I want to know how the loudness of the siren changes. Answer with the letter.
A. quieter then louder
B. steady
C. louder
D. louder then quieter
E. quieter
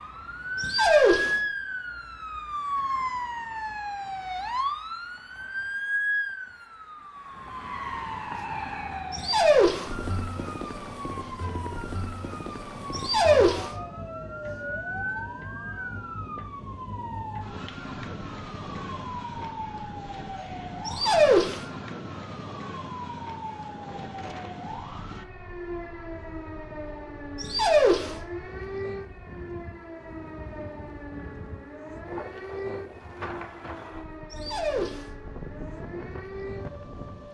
E.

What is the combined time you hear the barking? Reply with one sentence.
You can hear the barking for 5 seconds altogether.